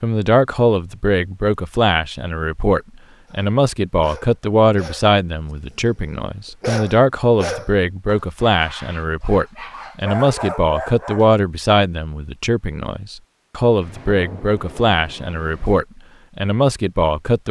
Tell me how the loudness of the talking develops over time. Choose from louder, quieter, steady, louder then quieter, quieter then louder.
steady.